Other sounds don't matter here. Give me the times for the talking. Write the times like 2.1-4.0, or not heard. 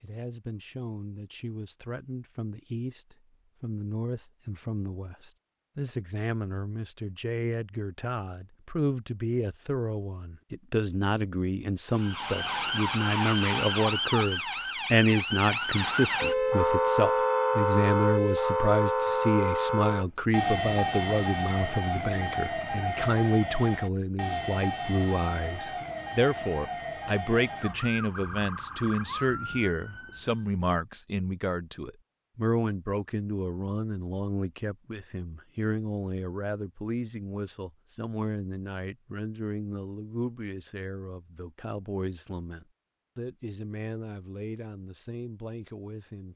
0.0-46.3.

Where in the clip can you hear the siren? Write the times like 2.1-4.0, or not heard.
11.9-30.4.